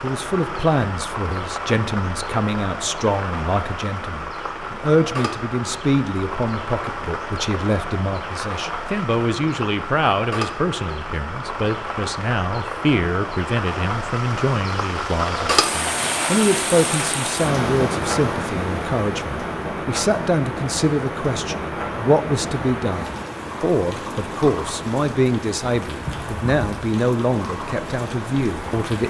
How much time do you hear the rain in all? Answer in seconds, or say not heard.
29 s.